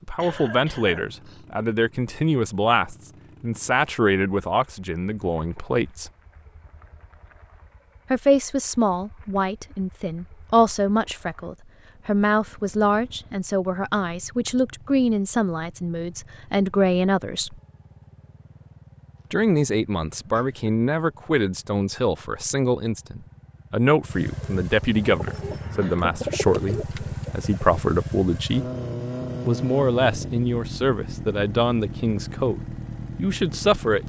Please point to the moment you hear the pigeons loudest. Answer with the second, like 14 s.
26 s.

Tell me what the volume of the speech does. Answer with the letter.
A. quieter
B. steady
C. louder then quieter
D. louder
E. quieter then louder
B.